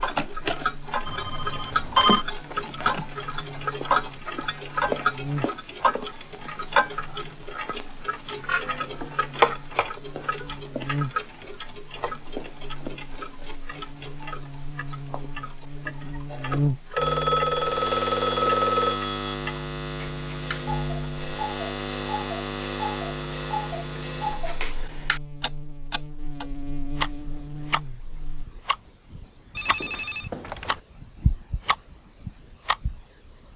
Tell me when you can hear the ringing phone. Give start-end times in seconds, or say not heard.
1.1-2.2, 16.9-19.4, 29.6-30.8.